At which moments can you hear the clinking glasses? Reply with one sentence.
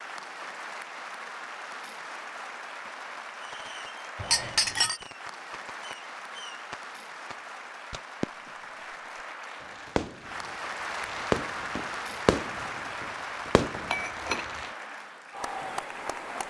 You can hear the clinking glasses from 4.2 to 5.0 s and from 13.9 to 14.7 s.